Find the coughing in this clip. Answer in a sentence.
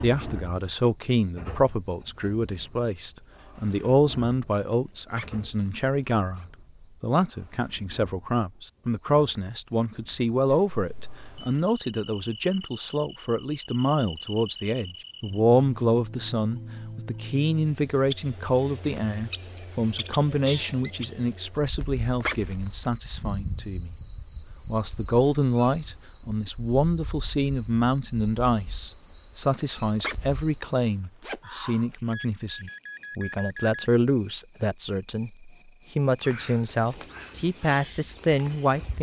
You can't hear the coughing here.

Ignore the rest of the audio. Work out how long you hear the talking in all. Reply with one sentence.
You can hear the talking for 38 seconds altogether.